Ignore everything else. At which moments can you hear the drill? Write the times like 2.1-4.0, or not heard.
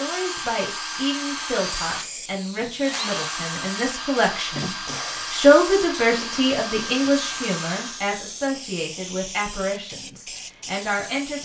0.0-8.1.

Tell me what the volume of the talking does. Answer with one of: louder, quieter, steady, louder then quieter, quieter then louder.
louder then quieter.